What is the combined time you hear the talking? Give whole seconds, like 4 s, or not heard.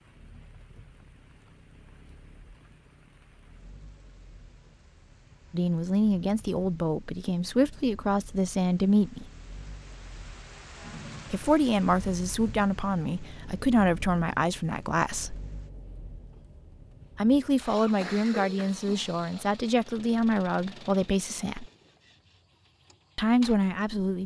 13 s.